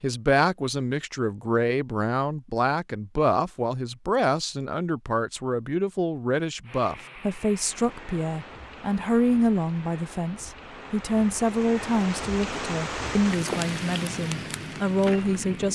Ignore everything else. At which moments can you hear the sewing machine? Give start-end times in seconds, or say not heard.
not heard.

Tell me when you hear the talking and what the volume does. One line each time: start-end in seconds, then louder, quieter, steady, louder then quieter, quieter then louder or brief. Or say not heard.
0.0-15.7 steady.